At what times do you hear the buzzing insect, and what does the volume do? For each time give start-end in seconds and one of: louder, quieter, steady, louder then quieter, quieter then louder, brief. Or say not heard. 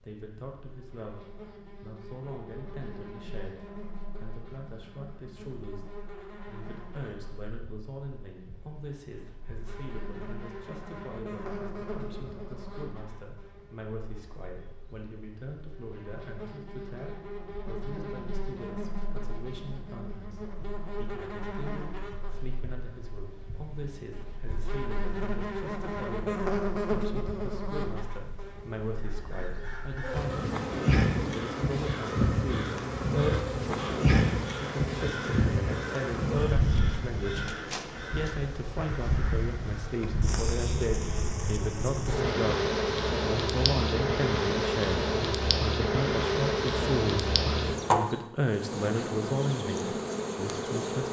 0.0-51.0 louder.